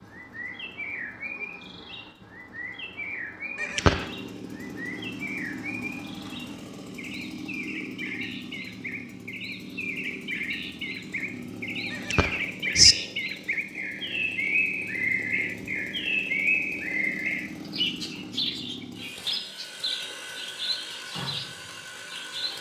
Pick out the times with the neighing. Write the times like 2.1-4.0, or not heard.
3.5-4.0, 11.9-12.9.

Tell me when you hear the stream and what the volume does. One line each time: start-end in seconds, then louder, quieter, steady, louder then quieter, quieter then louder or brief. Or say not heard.
not heard.